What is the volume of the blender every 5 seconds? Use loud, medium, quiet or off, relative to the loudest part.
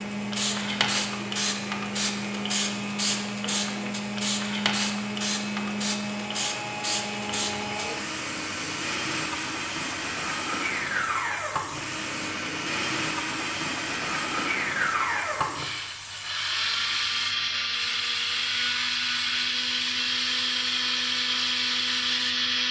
medium, medium, loud, loud, loud.